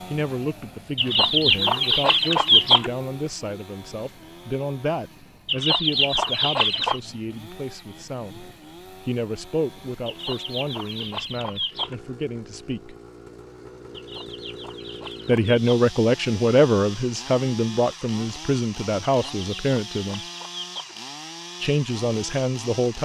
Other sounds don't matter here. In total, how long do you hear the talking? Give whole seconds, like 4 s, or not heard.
19 s.